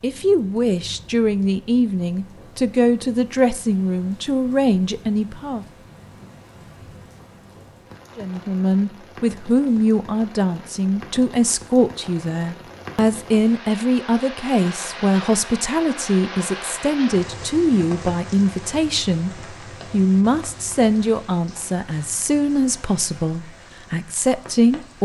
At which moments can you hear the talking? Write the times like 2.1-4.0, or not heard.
0.0-5.7, 8.2-25.0.